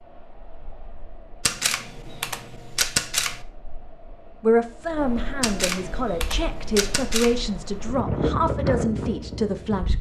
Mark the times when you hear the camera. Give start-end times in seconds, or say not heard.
1.4-3.4, 5.4-7.4.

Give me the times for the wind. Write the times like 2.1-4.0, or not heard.
0.0-9.9.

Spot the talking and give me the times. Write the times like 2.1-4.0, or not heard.
4.4-9.9.